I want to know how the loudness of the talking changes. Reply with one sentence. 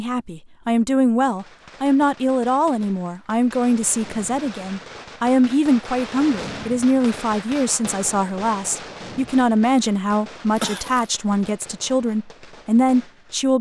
The volume of the talking stays about the same.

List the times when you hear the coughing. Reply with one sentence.
You can hear the coughing from 10.6 to 11.2 s.